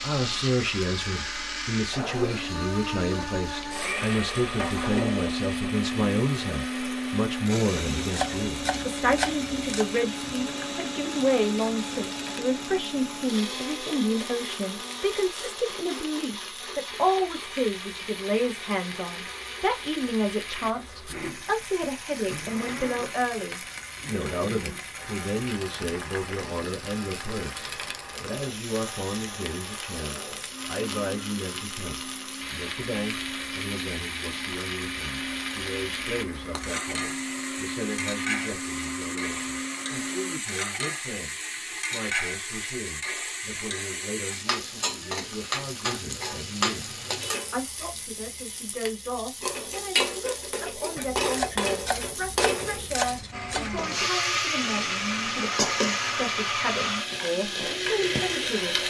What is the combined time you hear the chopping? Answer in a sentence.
You can hear the chopping for 5 seconds altogether.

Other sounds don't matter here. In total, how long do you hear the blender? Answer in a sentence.
You can hear the blender for 46 seconds altogether.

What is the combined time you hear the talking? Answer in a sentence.
The talking can be heard for 59 seconds in total.